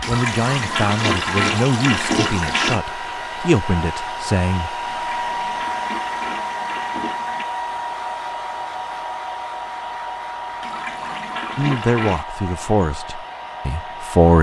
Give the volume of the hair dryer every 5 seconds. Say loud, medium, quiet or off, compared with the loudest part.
loud, loud, medium.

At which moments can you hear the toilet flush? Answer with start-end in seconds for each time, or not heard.
0.0-2.8, 4.8-7.5, 10.6-12.2.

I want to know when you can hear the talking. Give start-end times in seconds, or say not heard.
0.1-4.8, 11.6-14.3.